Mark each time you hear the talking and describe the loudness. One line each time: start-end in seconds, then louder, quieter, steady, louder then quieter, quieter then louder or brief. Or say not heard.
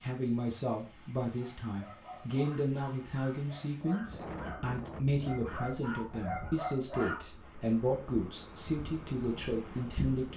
0.0-10.3 steady.